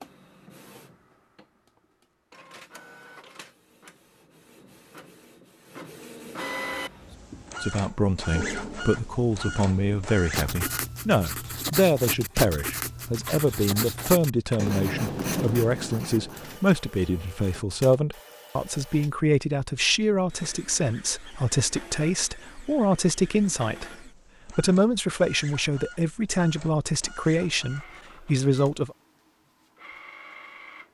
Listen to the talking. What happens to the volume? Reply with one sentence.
The loudness of the talking stays about the same.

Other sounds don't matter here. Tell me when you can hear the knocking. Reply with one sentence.
The knocking can't be heard in this clip.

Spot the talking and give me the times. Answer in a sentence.
You can hear the talking from 7.6 to 28.9 s.